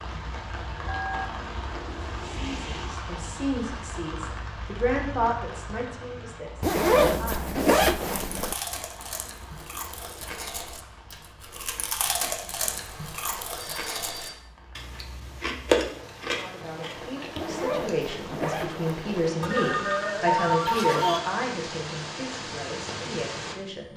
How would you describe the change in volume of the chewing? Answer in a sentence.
The loudness of the chewing goes up, then down.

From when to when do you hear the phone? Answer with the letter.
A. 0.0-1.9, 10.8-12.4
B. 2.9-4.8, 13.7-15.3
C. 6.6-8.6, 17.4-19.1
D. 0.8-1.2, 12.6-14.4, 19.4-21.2
D.